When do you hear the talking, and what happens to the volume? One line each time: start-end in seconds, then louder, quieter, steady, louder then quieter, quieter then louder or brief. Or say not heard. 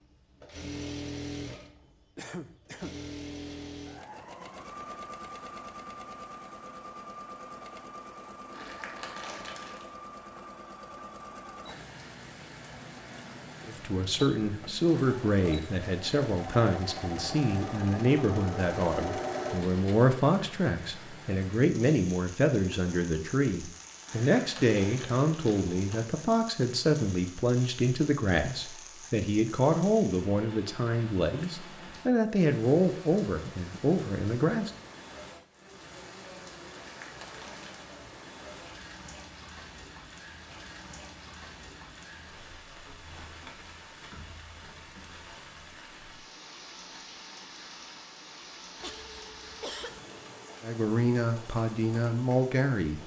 13.7-34.7 steady
50.6-53.0 brief.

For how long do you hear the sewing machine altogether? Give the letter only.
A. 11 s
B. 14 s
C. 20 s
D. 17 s
C.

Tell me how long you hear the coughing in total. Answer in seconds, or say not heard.
2 s.